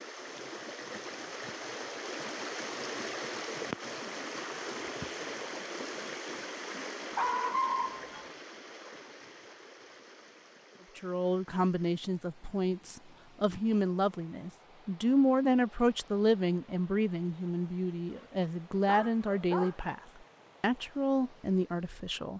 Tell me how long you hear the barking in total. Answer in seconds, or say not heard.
3 s.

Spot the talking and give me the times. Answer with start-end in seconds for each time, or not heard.
10.9-20.0, 20.6-22.3.